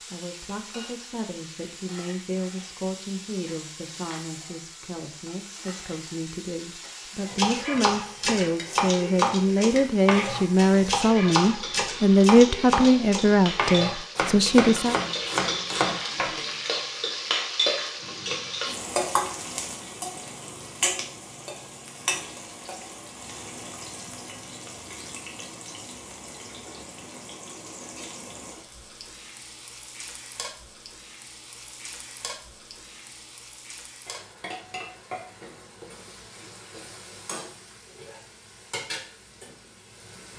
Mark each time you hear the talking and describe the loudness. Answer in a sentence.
The talking can be heard from 0.0 to 14.9 s, getting louder.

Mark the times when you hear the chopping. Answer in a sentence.
The chopping can be heard from 7.2 to 16.4 s.